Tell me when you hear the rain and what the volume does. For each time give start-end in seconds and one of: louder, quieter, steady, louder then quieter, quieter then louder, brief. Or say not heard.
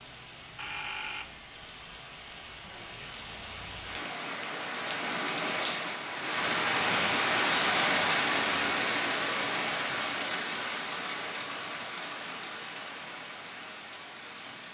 0.0-14.6 louder then quieter.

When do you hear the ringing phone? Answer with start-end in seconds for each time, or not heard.
0.6-1.6.